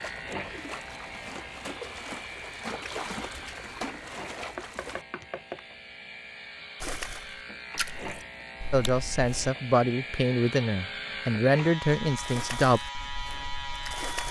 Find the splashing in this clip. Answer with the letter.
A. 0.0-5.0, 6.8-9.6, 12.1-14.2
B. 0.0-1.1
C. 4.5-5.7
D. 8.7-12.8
A.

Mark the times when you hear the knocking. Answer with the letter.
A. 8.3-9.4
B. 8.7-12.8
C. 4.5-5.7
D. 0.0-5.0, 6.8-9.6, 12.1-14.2
C.